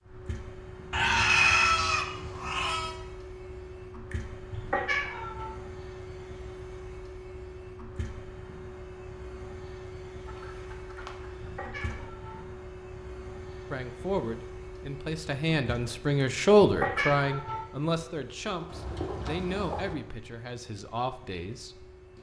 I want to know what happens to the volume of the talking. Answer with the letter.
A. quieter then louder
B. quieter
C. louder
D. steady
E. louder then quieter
E.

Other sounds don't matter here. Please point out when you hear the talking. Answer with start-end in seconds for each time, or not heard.
13.7-21.9.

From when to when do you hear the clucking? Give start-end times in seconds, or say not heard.
0.9-3.0, 10.2-12.1, 18.4-19.9.